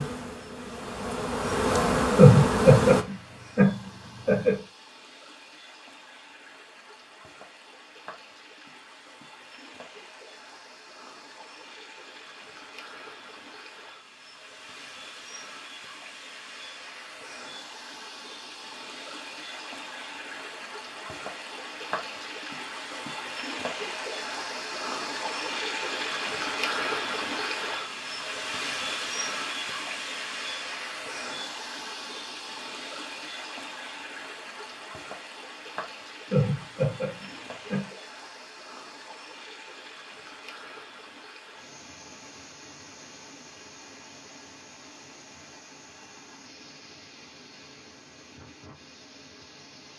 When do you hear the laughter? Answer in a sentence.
You can hear the laughter from 2.1 to 4.5 s and from 36.3 to 37.9 s.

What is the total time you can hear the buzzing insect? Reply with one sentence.
The buzzing insect can be heard for 3 seconds in total.